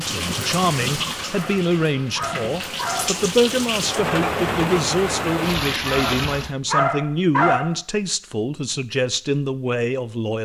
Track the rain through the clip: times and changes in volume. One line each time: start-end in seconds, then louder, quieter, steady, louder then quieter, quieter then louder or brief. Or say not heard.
0.0-6.5 quieter then louder.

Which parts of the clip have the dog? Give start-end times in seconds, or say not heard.
1.3-3.1, 5.8-7.8.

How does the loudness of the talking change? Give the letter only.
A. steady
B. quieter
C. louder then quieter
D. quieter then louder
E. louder
A.